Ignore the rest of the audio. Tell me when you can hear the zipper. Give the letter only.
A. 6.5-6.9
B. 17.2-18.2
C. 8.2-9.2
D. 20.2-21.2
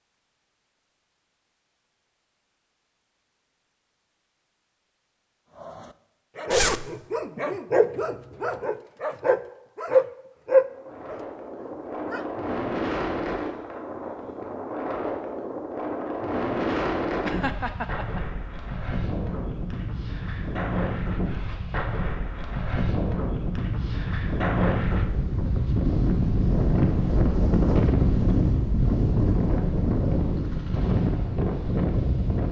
A.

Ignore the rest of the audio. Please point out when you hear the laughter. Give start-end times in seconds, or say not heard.
17.2-18.2.